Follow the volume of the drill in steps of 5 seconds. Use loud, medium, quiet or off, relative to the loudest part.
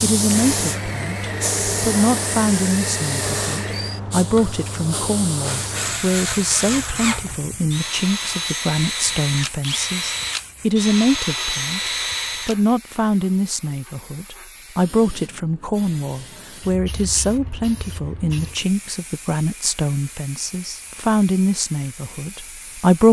medium, loud, loud, off, off.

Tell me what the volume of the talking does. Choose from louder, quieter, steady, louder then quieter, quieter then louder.
steady.